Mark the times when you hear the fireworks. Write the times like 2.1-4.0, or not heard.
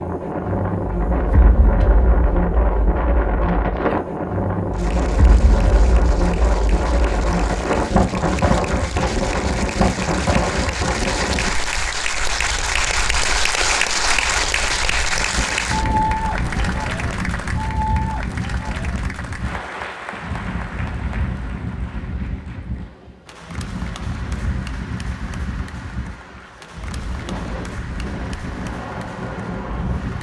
not heard.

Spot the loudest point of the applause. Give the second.
14 s.